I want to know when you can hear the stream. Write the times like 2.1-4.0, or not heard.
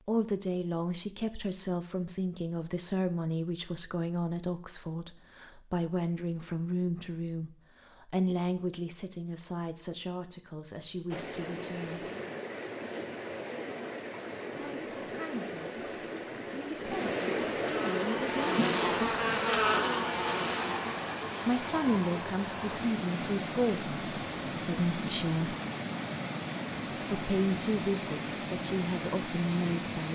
11.1-30.0.